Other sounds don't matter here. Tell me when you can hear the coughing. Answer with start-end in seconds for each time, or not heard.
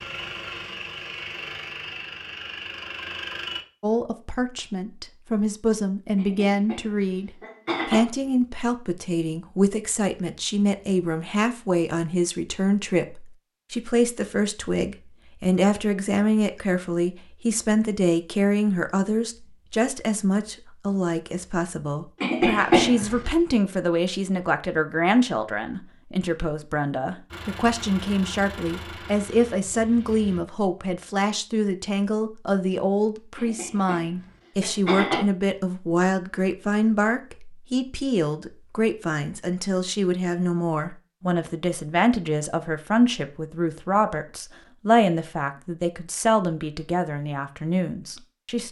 6.2-8.1, 22.2-23.4, 33.4-35.2.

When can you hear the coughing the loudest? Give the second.
23 s.